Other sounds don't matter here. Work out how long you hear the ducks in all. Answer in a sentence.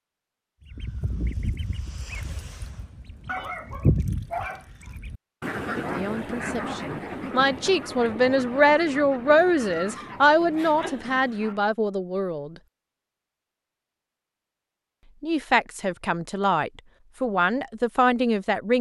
The ducks can be heard for 11 seconds in total.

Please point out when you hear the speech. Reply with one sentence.
You can hear the speech from 5.8 to 12.6 s and from 15.2 to 18.7 s.